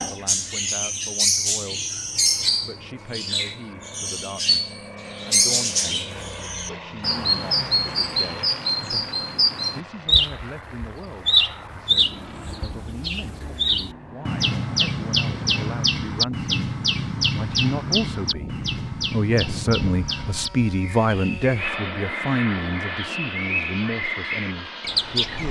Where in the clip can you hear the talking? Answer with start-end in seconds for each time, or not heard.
0.1-1.8, 2.6-25.4.